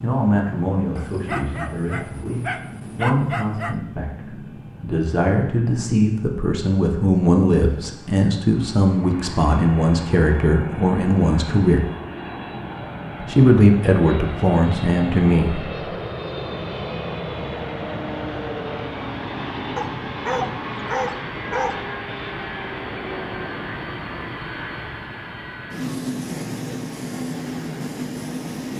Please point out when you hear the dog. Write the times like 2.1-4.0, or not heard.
0.9-3.8, 19.8-21.8.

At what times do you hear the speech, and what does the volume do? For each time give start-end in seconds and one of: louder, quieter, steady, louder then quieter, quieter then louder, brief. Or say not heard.
0.0-11.8 louder
13.2-15.8 brief.